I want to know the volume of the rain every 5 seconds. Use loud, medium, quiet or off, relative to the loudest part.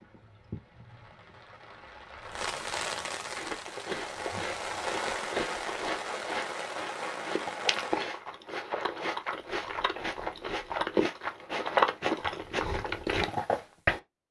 loud, loud, off.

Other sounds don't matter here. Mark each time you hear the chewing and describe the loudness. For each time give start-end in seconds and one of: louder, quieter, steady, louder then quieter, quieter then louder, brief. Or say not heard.
3.4-14.0 louder.